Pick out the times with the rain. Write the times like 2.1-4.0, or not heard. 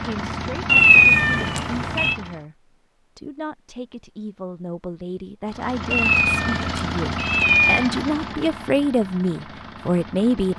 not heard.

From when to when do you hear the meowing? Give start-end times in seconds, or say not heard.
0.7-2.1, 5.9-7.9.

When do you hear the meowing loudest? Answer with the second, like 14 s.
1 s.